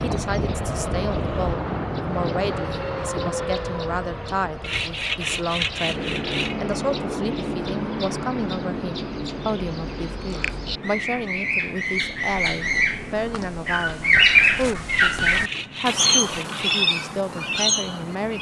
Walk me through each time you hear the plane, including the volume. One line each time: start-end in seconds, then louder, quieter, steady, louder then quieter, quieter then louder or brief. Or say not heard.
0.0-18.3 quieter.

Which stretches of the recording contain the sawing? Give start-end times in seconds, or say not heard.
4.6-6.6, 14.8-16.9.